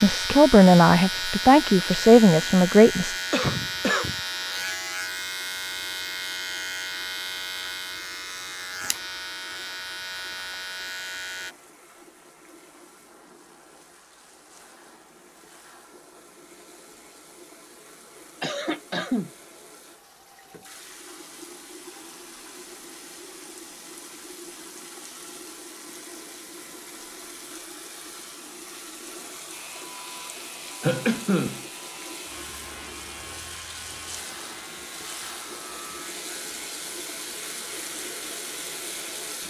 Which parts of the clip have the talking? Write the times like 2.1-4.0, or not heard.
0.0-3.1.